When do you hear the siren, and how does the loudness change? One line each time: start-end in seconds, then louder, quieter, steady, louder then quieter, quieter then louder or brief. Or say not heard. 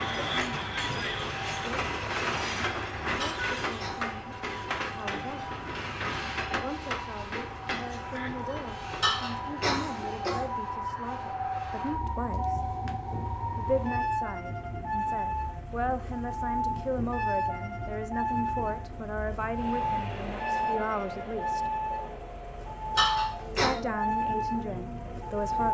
0.0-25.7 louder.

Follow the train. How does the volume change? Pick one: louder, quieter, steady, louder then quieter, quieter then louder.
quieter.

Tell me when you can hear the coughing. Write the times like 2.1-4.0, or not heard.
3.1-4.2, 9.0-10.4, 22.9-23.7.